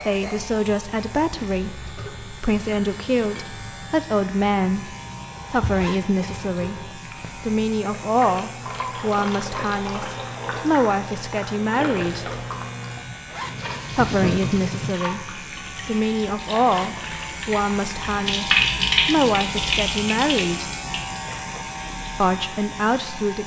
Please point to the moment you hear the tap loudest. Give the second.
19 s.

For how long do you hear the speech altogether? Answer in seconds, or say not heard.
20 s.